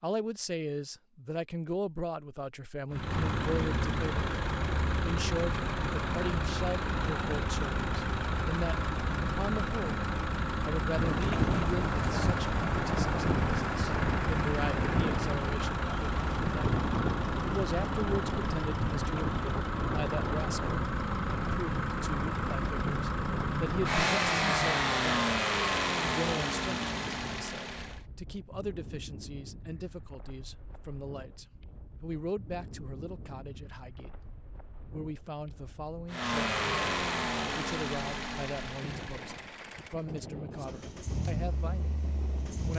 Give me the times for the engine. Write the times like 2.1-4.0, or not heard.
2.9-28.0, 36.0-42.7.